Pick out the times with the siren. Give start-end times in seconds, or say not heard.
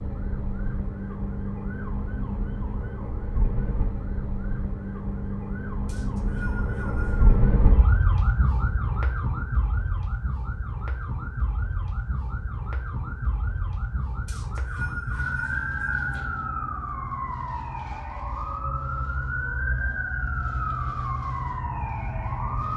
0.0-22.7.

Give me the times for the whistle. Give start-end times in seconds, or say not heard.
5.8-7.5, 14.2-16.1.